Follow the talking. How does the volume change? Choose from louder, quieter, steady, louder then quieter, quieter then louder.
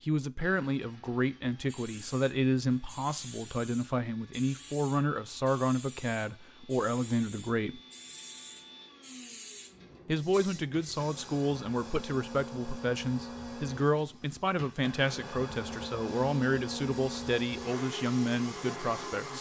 steady.